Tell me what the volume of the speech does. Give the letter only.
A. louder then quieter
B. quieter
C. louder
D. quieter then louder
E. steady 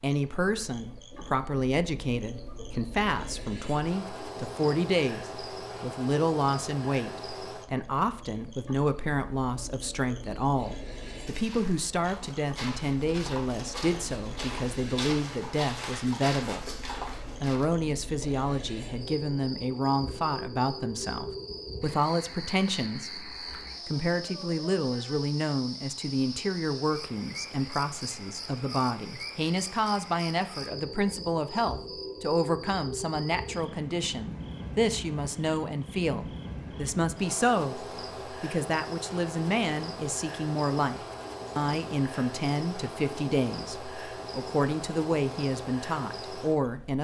E.